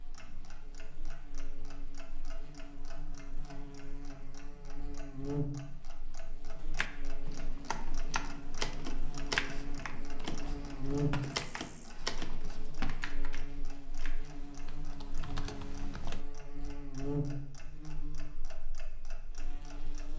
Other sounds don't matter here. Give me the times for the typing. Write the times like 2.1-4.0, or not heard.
6.8-16.2.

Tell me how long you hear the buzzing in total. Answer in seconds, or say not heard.
20 s.